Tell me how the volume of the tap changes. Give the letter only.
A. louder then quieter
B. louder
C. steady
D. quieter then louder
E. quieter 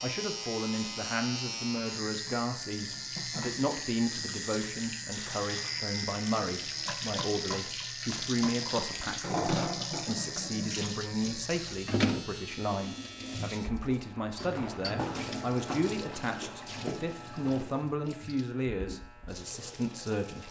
A.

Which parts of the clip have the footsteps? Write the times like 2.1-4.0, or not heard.
14.4-17.9.